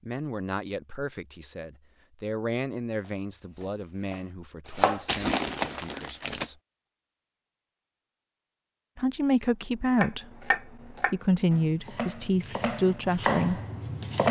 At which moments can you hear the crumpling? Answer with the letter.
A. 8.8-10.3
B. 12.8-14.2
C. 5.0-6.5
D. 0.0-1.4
C.